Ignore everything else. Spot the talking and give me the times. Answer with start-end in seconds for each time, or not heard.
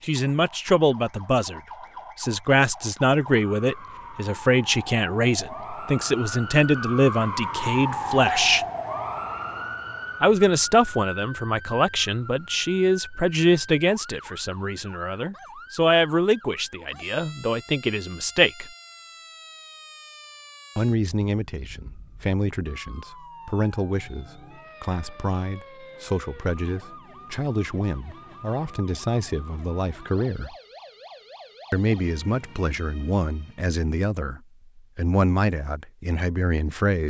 0.0-8.7, 10.2-18.7, 20.8-30.6, 31.7-37.0.